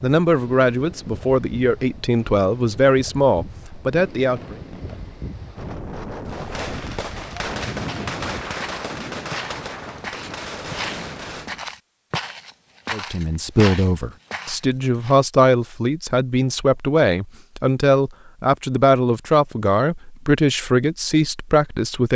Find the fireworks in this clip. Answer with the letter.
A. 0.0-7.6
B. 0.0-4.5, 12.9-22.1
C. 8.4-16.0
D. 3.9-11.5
D.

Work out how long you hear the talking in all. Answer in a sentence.
The talking can be heard for 14 seconds in total.